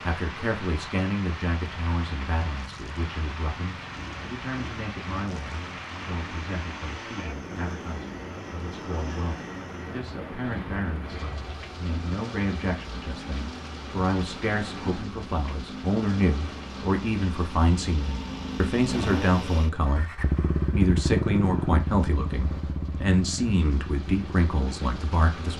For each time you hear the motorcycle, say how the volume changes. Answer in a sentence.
The motorcycle can be heard from 0.0 to 25.5 s, getting louder.